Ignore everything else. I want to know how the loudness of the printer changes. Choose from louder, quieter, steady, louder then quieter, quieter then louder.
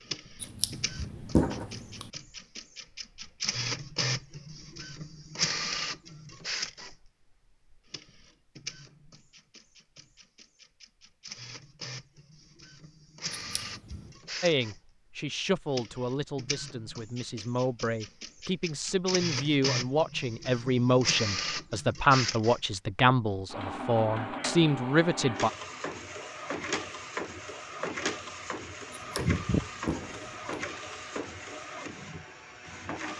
quieter then louder.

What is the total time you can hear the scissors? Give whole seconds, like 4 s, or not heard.
4 s.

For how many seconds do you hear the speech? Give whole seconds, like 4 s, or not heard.
11 s.